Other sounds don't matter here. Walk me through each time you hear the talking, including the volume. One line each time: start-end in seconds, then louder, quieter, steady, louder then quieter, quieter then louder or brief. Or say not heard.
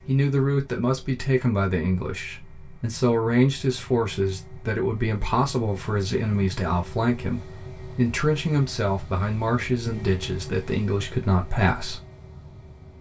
0.1-12.0 steady.